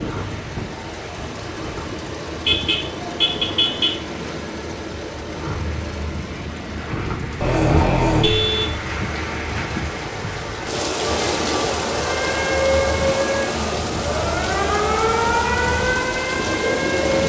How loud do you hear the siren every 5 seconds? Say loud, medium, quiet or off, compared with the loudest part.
off, off, loud, loud.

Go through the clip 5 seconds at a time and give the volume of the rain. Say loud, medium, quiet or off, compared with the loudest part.
medium, medium, loud, loud.